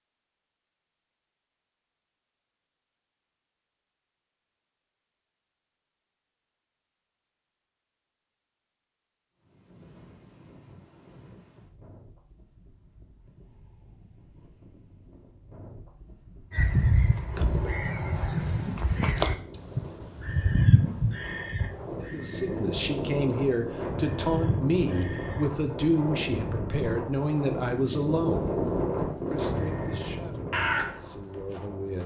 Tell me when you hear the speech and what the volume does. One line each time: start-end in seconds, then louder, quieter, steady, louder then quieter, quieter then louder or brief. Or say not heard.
22.0-28.6 steady
29.3-32.0 brief.